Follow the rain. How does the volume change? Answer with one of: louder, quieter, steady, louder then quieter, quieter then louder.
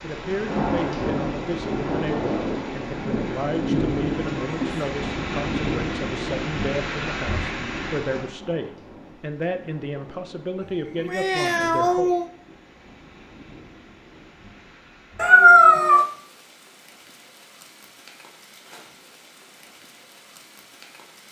quieter.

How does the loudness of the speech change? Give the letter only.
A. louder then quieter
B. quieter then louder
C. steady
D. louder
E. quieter
C.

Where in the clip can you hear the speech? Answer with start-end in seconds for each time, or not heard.
0.0-12.1.